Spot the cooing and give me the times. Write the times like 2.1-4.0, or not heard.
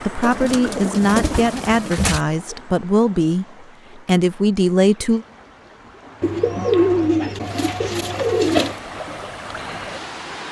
0.2-2.2, 6.2-8.8.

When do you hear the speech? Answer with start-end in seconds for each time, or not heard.
0.0-5.2.